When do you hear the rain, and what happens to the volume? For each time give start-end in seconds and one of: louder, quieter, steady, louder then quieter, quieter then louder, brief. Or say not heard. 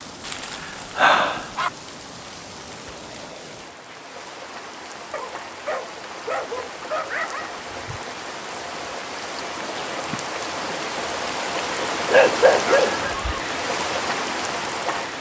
0.0-15.1 louder.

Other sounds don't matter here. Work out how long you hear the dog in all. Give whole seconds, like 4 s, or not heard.
5 s.